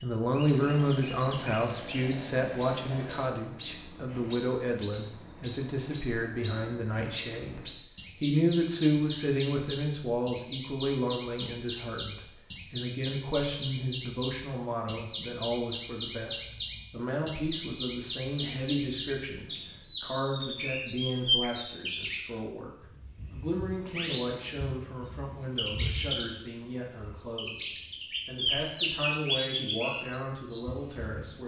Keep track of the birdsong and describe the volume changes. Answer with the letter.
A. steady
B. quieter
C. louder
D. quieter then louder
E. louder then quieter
C.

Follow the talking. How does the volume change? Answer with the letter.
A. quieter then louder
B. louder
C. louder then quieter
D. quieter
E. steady
D.